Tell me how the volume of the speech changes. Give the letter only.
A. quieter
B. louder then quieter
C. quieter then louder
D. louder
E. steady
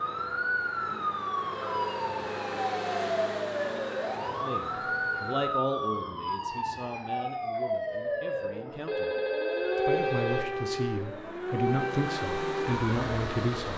C.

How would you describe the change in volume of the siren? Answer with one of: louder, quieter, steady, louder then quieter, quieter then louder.
steady.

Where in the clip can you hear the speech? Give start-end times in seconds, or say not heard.
4.4-9.2, 9.8-13.7.